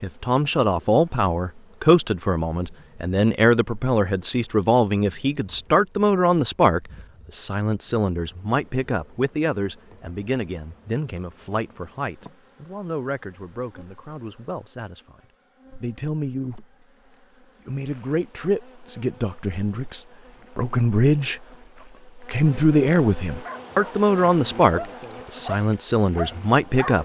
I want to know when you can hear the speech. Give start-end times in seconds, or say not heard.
0.0-15.2, 15.8-16.6, 17.6-21.4, 22.1-26.9.